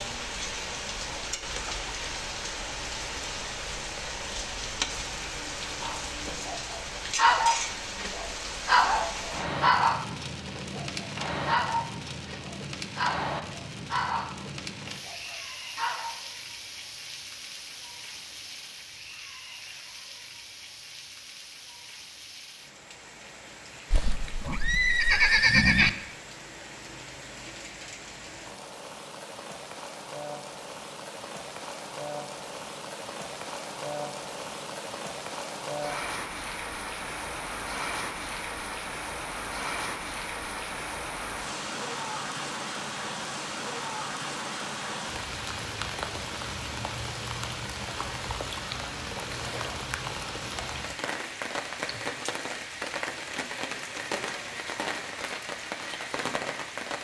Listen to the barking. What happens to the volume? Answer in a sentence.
The volume of the barking goes down.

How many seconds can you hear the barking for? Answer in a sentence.
You can hear the barking for 10 seconds altogether.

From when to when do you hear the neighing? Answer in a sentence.
You can hear the neighing from 23.9 to 25.9 s.